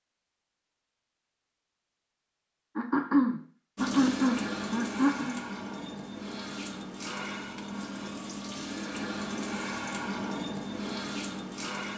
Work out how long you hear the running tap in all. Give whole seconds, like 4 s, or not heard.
8 s.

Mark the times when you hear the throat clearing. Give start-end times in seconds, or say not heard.
2.8-5.3.